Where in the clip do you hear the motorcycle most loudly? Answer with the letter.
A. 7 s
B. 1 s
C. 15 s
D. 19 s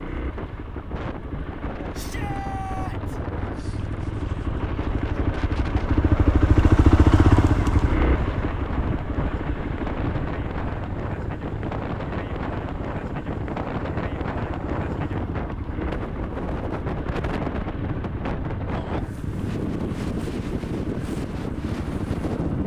A.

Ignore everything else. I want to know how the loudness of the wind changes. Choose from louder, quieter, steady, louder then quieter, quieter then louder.
louder.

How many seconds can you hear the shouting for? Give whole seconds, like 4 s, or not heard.
2 s.